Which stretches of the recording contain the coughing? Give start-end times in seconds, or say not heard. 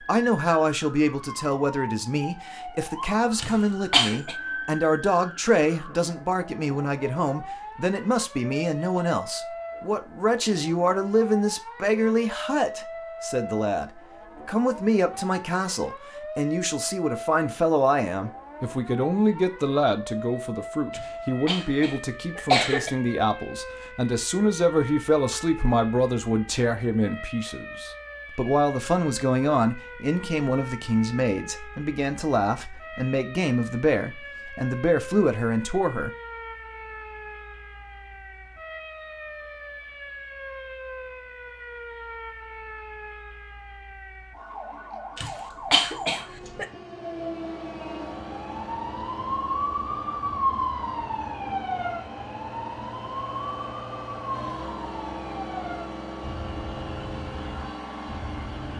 3.4-4.3, 20.9-22.9, 45.1-46.6.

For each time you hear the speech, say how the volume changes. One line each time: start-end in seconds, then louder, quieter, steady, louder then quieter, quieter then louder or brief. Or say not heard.
0.0-36.1 steady.